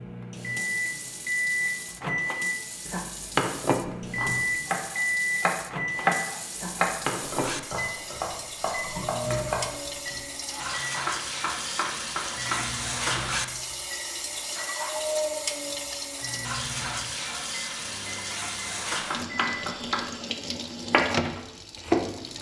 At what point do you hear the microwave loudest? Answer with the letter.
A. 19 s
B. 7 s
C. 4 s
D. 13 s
C.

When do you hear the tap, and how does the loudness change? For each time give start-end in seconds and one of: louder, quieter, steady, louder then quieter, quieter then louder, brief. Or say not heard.
0.1-22.3 louder.